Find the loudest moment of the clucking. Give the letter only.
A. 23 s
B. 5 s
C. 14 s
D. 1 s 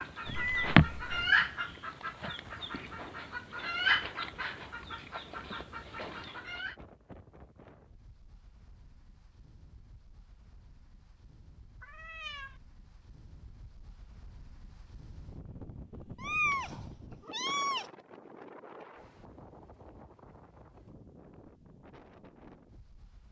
D.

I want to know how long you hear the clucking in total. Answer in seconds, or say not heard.
7 s.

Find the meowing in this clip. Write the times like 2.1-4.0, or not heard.
0.2-1.3, 11.8-12.6, 16.2-17.9.